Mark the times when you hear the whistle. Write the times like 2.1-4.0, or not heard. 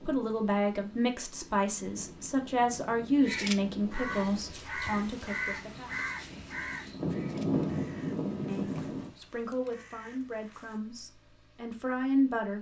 not heard.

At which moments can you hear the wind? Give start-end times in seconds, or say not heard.
0.0-9.1.